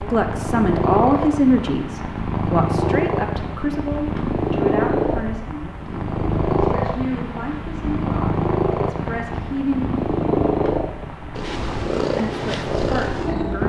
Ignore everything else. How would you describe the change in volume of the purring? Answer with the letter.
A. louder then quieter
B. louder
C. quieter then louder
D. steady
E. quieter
D.